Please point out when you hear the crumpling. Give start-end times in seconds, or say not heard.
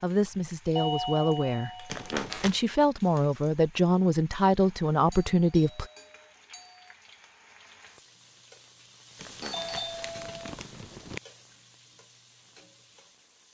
1.9-2.6, 9.2-11.2.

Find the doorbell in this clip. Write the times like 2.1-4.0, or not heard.
0.8-2.1, 5.1-7.0, 9.4-10.6.